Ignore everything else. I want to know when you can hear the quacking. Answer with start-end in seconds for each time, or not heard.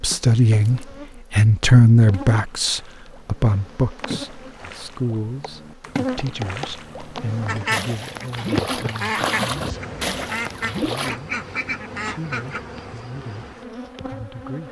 7.5-12.6.